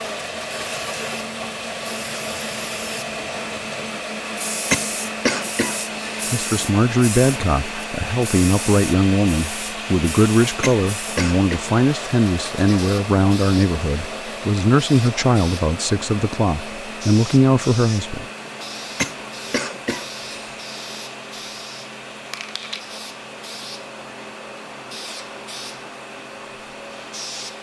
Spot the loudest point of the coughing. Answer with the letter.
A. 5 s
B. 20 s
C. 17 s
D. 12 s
A.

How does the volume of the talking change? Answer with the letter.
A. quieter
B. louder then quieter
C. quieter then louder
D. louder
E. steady
E.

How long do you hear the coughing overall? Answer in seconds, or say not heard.
4 s.